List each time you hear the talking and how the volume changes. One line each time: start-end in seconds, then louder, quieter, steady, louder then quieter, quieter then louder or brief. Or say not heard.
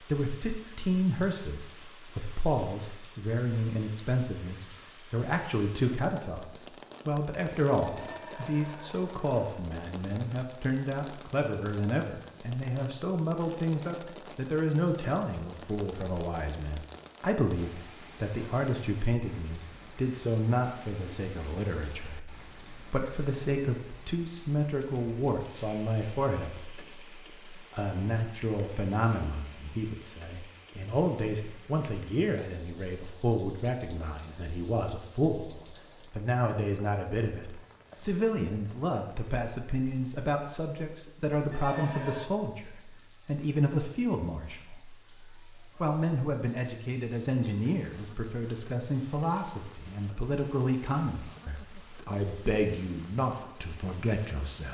0.1-54.6 steady.